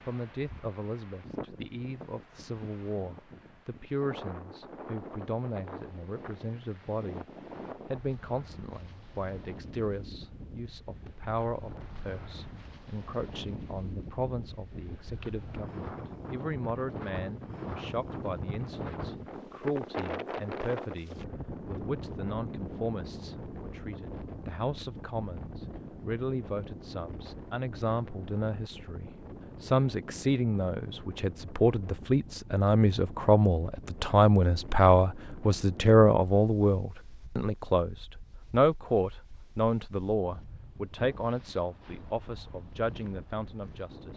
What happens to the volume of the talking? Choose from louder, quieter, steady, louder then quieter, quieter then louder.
louder.